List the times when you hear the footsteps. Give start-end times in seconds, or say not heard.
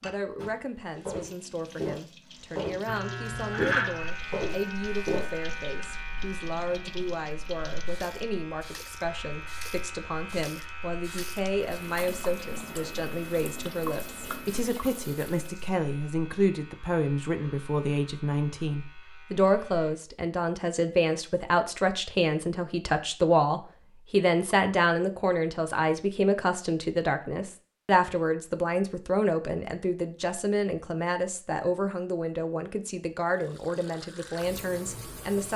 0.3-5.3.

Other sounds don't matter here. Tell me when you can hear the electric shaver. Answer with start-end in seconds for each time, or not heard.
2.9-19.9.